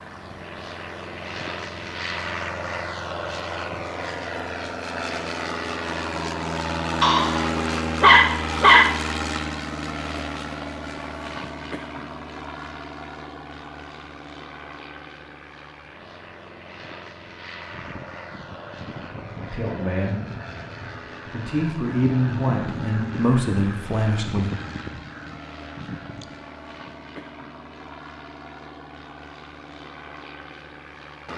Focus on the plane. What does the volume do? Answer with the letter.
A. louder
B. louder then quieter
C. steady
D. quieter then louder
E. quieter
E.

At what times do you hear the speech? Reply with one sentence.
You can hear the speech from 19.5 to 20.1 s and from 21.3 to 24.5 s.